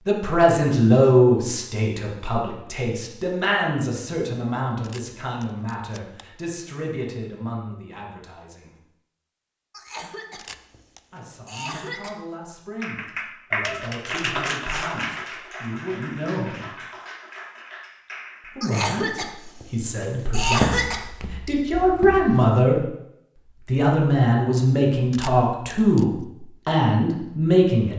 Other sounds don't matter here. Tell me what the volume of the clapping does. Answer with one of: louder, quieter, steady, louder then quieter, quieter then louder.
quieter.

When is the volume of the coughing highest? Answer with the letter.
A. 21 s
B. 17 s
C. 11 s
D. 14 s
A.